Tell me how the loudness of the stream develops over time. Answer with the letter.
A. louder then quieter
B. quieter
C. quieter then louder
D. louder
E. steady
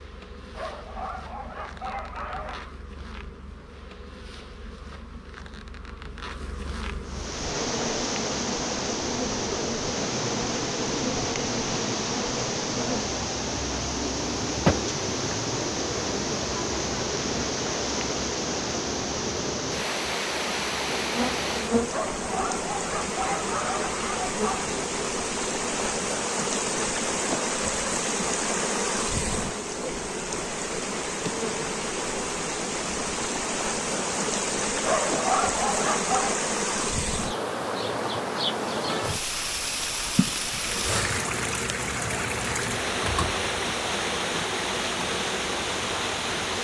E.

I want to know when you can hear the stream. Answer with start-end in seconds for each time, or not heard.
7.0-46.5.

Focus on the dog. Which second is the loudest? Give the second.
35 s.